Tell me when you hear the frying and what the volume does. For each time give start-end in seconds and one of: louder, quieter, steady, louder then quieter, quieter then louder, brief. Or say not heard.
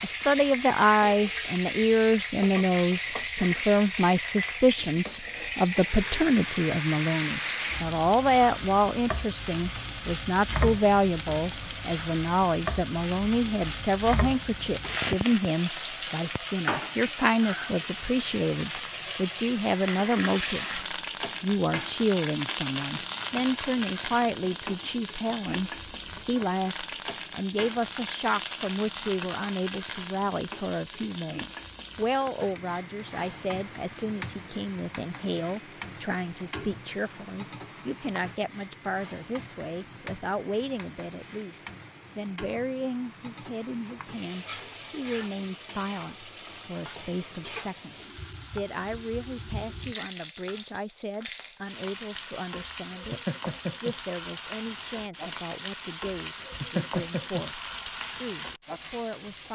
0.0-59.4 quieter then louder.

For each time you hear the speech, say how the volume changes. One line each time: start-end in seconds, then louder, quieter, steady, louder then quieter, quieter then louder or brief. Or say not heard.
0.0-59.4 quieter.